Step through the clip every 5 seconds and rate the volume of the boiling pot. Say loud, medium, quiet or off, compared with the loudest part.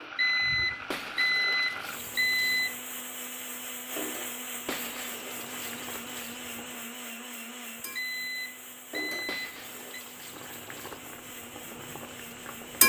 quiet, quiet, loud.